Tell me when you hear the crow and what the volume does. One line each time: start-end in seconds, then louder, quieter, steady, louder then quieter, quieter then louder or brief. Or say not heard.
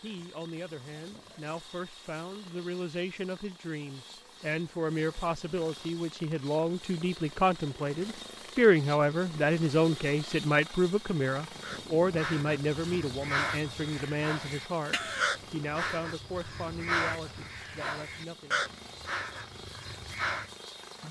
11.6-20.5 steady.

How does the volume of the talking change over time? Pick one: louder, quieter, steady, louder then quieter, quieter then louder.
louder then quieter.